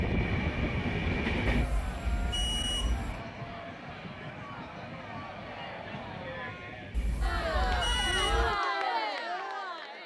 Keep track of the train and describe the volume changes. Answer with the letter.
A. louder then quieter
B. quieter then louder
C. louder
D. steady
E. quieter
E.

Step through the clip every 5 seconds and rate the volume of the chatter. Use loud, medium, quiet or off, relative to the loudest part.
medium, loud.